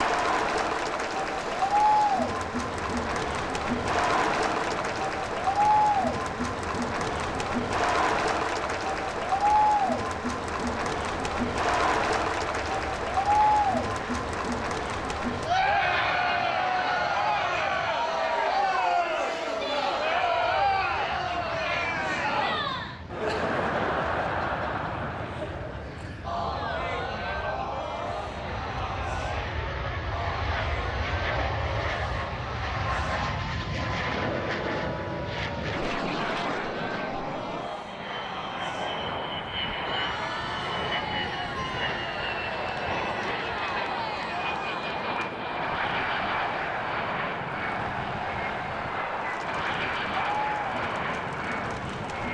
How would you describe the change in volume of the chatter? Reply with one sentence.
The loudness of the chatter goes down.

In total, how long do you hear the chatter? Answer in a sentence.
The chatter can be heard for 52 seconds in total.